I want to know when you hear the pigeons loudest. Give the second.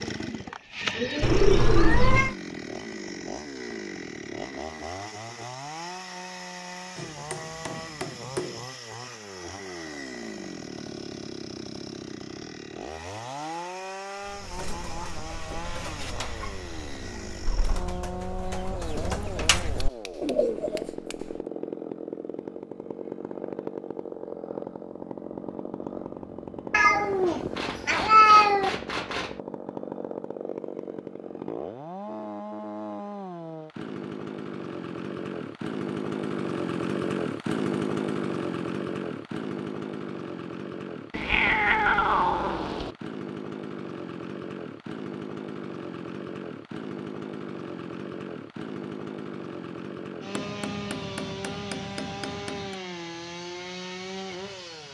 1 s.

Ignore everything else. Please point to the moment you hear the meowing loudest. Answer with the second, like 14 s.
28 s.